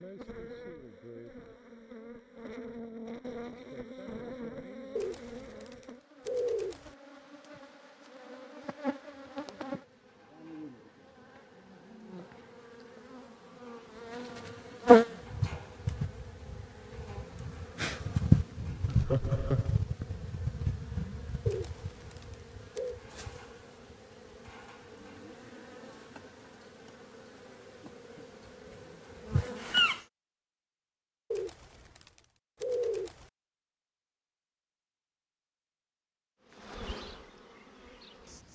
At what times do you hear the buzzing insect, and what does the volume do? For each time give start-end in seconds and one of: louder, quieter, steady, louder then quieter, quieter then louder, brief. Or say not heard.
0.0-30.1 louder then quieter
36.4-38.4 brief.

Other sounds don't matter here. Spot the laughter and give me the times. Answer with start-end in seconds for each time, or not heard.
18.9-19.8.